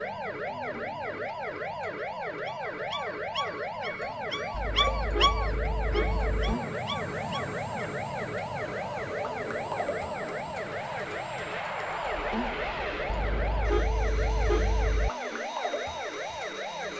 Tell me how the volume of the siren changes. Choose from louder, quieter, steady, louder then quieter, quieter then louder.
steady.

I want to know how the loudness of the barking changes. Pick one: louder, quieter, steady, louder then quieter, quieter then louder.
louder then quieter.